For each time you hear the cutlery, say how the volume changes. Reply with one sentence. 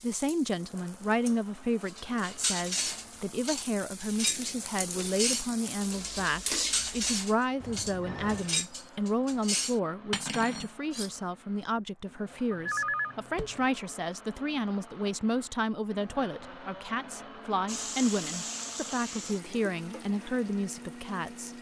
The cutlery can be heard from 1.9 to 11.1 s, at a steady volume.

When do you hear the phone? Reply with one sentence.
You can hear the phone from 7.6 to 8.6 s and from 12.5 to 13.7 s.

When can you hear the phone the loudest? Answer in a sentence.
The volume of the phone peaks at 13 seconds.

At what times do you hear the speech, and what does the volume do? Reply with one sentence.
You can hear the speech from 0.0 to 21.5 s, at a steady volume.